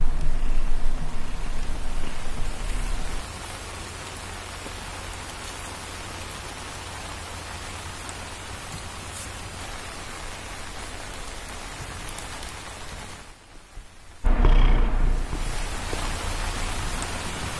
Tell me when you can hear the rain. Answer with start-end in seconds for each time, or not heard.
0.0-17.5.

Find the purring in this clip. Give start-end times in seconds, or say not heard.
0.0-3.2, 14.2-17.5.